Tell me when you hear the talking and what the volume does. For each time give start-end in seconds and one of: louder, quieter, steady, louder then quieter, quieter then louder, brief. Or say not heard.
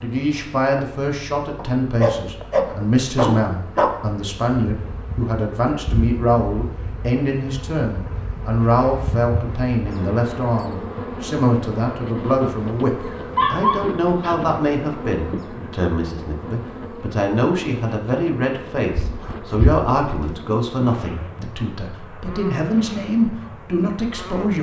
0.0-24.5 steady.